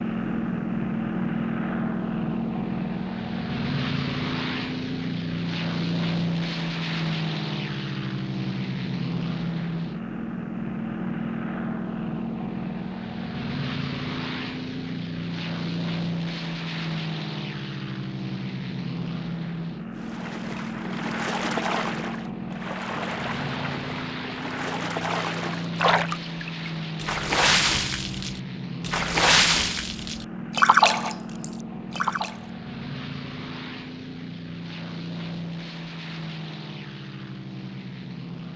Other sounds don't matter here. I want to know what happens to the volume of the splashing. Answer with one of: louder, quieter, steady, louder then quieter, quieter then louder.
louder.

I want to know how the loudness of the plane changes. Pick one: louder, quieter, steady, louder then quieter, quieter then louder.
quieter.